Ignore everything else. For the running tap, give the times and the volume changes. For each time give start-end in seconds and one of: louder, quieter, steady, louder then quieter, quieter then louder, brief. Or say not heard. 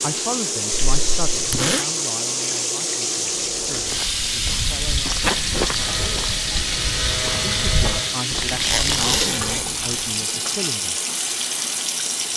0.0-12.3 steady.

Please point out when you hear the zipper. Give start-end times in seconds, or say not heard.
0.8-1.9, 5.2-6.1, 8.4-9.8.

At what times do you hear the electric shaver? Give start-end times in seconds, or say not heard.
5.7-8.2.